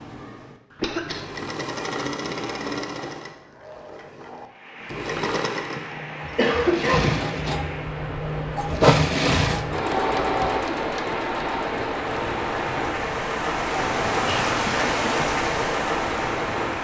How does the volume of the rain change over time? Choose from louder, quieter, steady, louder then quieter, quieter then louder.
louder.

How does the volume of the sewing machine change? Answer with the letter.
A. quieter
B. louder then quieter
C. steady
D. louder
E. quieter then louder
B.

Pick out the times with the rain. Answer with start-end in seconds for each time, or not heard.
4.4-16.7.